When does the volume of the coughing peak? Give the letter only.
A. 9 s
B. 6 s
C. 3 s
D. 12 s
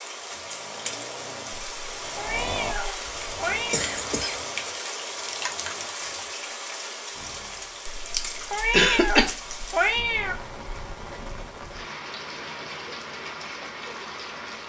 A.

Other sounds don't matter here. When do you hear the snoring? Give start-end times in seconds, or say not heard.
0.1-7.8.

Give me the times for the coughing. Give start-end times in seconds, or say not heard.
3.0-4.4, 8.7-9.3.